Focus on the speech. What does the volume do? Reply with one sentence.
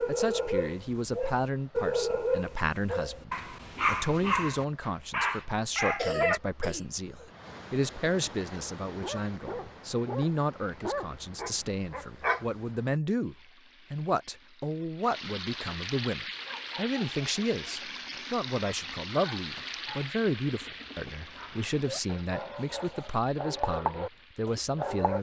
The loudness of the speech stays about the same.